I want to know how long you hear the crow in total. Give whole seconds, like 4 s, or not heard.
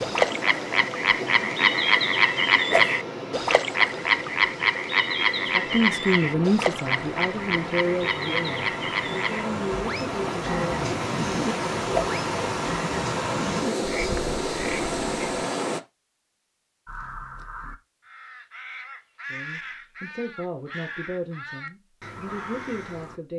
6 s.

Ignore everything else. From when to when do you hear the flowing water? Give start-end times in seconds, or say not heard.
0.0-15.8.